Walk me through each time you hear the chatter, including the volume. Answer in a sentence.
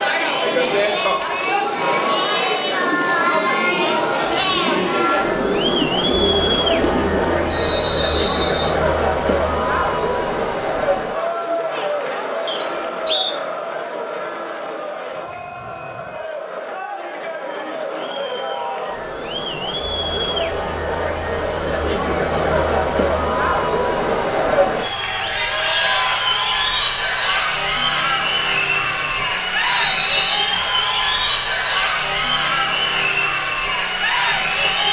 The chatter can be heard from 0.0 to 34.8 s, getting quieter then louder.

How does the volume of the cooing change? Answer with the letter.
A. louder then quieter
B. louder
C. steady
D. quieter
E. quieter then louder
B.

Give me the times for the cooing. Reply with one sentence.
You can hear the cooing from 0.1 to 7.8 s.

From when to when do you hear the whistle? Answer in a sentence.
You can hear the whistle from 7.5 to 8.8 s, from 12.4 to 13.3 s and from 29.6 to 30.4 s.